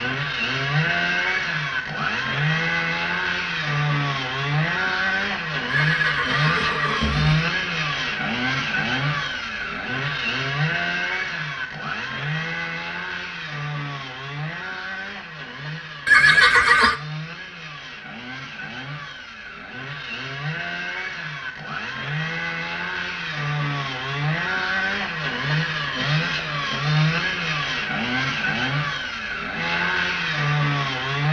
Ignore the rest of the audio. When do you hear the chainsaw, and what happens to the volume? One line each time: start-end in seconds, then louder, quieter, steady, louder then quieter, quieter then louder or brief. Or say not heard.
0.0-31.2 quieter then louder.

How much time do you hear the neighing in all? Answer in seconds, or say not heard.
3 s.